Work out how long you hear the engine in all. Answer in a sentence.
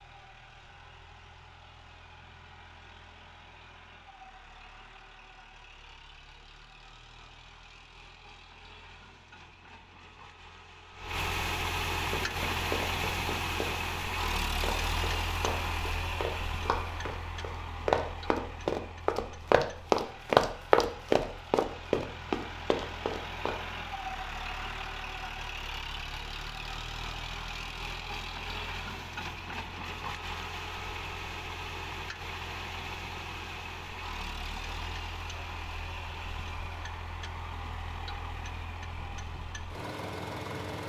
You can hear the engine for 41 seconds altogether.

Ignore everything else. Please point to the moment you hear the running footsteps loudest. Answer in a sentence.
The volume of the running footsteps peaks at 20 seconds.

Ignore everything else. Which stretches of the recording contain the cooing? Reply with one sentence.
You can't hear the cooing here.